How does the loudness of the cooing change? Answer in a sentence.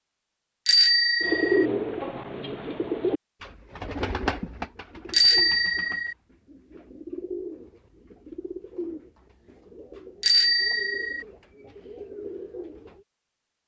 The loudness of the cooing goes down.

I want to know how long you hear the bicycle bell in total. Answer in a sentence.
You can hear the bicycle bell for 3 seconds altogether.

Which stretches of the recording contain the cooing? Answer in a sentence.
You can hear the cooing from 1.2 to 13.1 s.